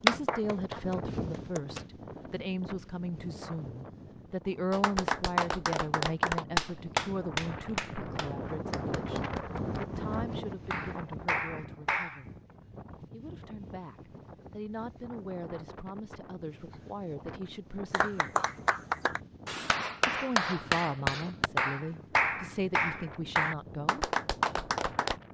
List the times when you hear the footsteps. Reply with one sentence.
You can't hear the footsteps here.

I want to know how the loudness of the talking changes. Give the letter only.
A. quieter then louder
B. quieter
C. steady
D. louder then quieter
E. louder
A.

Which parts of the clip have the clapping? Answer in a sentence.
The clapping can be heard from 0.1 to 1.9 s, from 4.7 to 12.2 s and from 17.9 to 25.1 s.